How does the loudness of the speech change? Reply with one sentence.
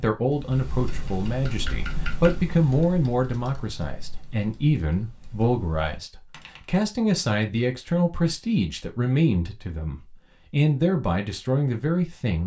The volume of the speech stays about the same.